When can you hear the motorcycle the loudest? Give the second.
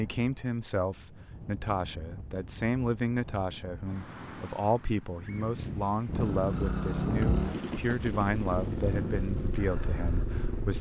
7 s.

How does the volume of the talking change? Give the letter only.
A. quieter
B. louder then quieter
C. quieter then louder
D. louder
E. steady
E.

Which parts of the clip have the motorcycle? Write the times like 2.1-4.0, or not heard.
6.1-10.7.